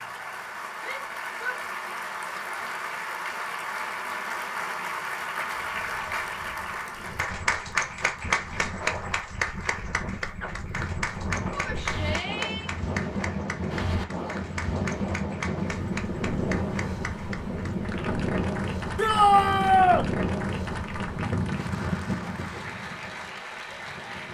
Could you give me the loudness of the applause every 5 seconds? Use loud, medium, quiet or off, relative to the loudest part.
loud, loud, medium, medium, medium.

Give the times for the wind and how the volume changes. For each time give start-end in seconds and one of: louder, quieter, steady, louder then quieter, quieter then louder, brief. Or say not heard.
5.8-24.2 louder.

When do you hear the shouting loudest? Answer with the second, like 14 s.
19 s.